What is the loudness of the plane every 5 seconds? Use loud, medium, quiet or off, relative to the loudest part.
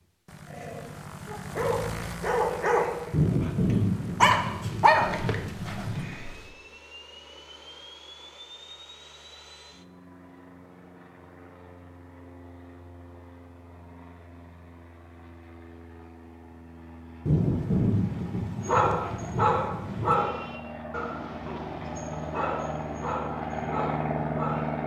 medium, quiet, quiet, quiet, loud.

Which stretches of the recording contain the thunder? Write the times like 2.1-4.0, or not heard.
3.1-6.1, 17.2-20.2.